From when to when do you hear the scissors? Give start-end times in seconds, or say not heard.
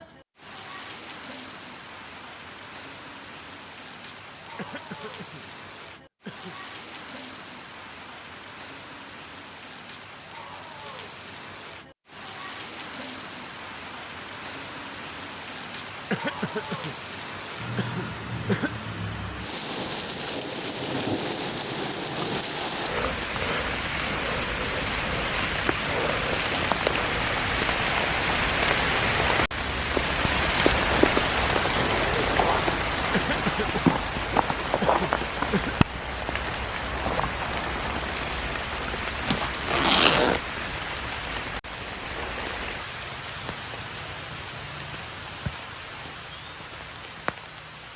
not heard.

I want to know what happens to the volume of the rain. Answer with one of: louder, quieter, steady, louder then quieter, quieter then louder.
louder then quieter.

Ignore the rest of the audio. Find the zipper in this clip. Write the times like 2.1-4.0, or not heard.
39.2-40.4.